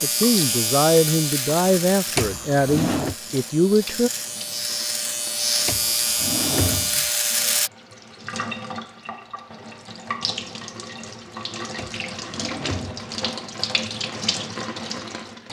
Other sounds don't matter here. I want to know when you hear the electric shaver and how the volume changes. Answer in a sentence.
You can hear the electric shaver from 0.0 to 7.7 s, getting quieter then louder.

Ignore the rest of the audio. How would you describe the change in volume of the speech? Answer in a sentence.
The volume of the speech stays about the same.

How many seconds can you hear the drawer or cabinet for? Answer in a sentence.
The drawer or cabinet can be heard for 4 seconds in total.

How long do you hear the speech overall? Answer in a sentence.
You can hear the speech for 4 seconds altogether.